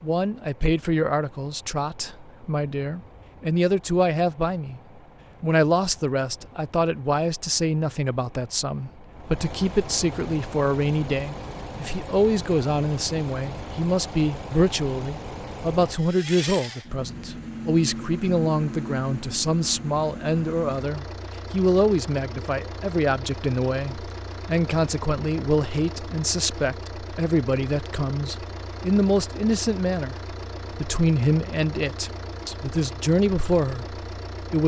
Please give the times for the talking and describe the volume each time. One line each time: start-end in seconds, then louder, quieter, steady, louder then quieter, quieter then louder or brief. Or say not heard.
0.0-4.8 quieter then louder
5.4-34.6 steady.